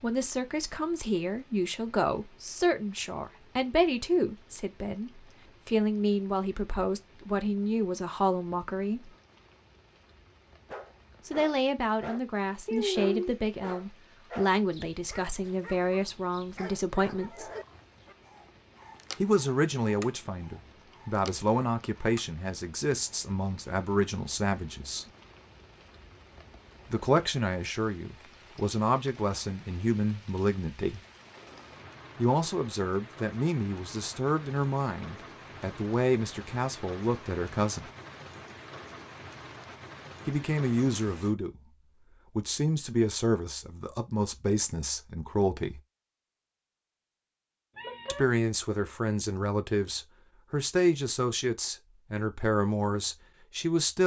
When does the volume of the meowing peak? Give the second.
13 s.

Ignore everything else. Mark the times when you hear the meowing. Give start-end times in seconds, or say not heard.
12.7-13.3, 47.8-48.2.